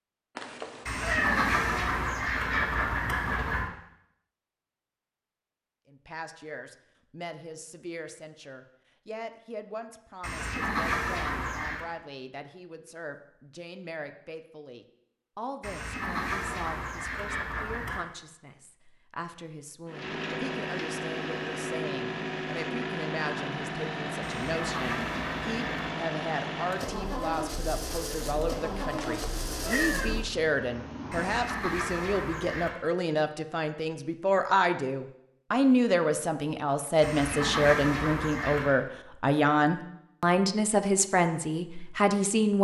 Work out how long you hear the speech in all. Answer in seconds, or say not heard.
37 s.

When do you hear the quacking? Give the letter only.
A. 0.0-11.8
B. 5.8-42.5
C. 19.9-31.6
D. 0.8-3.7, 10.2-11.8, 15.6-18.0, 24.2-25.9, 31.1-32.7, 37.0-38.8
D.